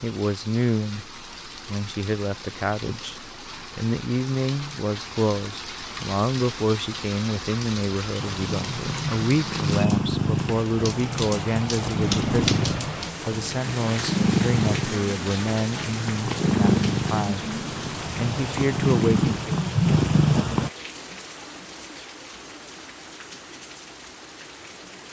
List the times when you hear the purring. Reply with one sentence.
The purring can be heard from 8.2 to 20.7 s.